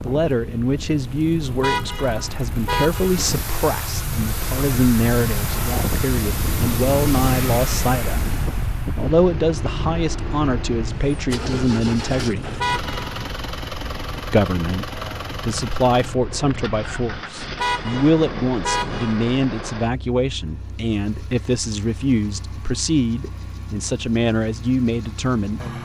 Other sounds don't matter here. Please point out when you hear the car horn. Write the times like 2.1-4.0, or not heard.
1.6-3.1, 12.6-13.2, 17.6-19.3.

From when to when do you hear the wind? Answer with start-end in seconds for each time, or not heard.
0.0-19.1.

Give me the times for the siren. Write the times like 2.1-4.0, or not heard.
not heard.